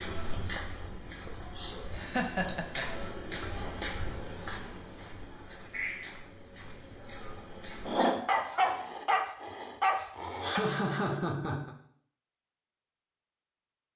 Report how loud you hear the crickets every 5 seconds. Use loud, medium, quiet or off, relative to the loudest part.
loud, loud, off.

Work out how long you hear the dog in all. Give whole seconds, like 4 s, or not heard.
3 s.